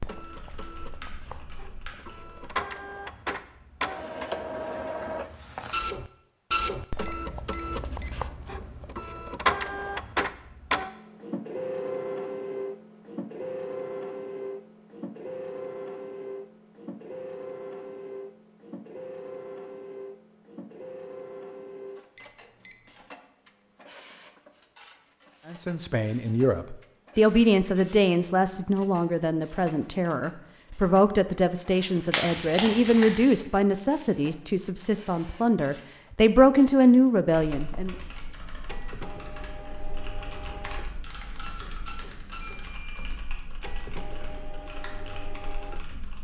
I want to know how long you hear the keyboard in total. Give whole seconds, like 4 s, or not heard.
11 s.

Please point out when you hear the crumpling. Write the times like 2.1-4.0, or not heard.
32.1-33.4.